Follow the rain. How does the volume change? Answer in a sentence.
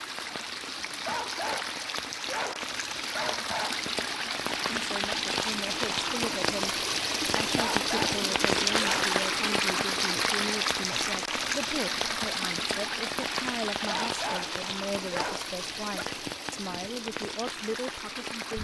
The volume of the rain goes up, then down.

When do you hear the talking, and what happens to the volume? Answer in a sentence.
You can hear the talking from 4.7 to 18.5 s, at a steady volume.